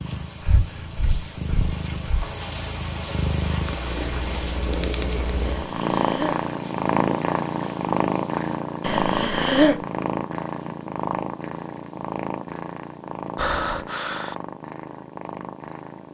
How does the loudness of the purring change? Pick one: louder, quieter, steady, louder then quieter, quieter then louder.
louder then quieter.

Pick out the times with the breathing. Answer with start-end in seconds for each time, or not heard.
0.4-2.3, 5.5-6.5, 8.8-9.8, 13.3-14.3.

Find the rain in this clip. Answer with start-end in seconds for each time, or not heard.
0.0-8.5.